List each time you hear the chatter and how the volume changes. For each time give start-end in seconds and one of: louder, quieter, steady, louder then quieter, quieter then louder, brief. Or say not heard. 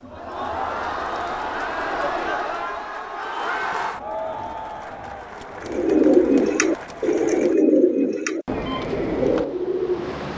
0.0-7.5 quieter.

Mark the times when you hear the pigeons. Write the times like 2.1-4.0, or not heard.
5.6-10.3.